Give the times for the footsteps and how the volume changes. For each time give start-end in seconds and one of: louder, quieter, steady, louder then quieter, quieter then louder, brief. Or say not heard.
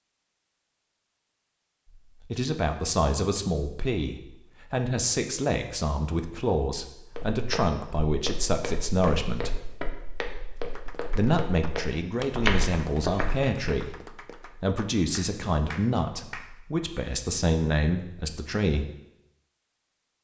7.2-13.6 louder.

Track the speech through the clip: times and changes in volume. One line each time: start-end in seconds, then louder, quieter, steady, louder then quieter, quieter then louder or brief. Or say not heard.
2.2-9.6 steady
11.1-18.9 steady.